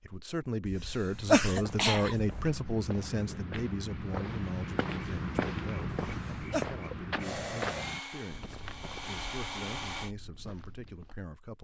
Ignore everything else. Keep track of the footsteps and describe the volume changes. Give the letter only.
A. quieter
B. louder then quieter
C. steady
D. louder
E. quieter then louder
B.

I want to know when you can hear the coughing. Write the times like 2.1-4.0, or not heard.
0.7-2.4, 6.0-6.7.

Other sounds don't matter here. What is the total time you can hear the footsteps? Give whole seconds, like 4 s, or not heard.
10 s.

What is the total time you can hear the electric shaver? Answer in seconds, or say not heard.
not heard.